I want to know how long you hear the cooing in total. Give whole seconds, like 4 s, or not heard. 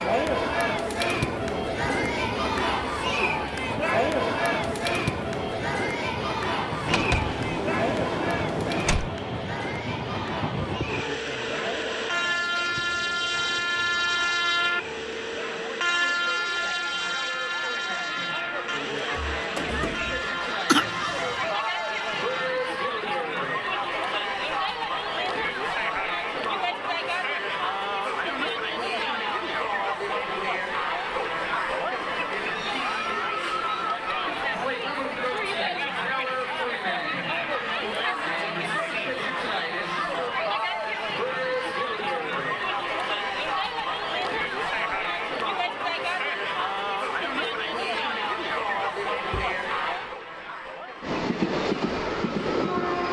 not heard.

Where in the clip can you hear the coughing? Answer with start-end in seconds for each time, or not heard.
20.6-21.5.